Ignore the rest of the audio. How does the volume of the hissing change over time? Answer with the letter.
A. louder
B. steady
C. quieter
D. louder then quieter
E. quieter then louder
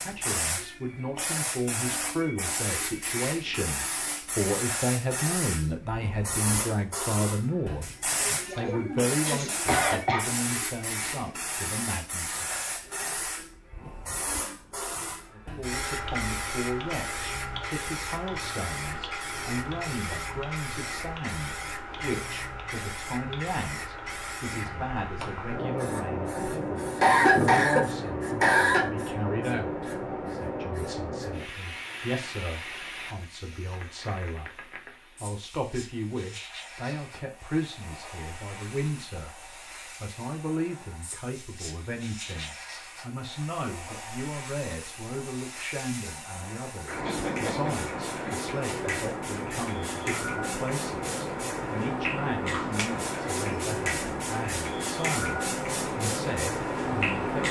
E.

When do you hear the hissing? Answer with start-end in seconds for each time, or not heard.
0.0-57.4.